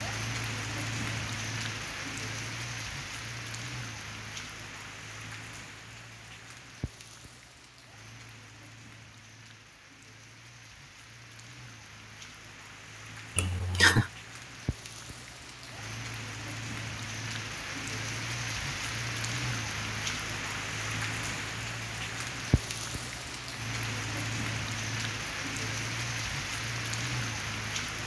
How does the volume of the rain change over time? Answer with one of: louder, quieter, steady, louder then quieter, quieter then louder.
quieter then louder.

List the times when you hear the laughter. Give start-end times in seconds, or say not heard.
13.3-14.1.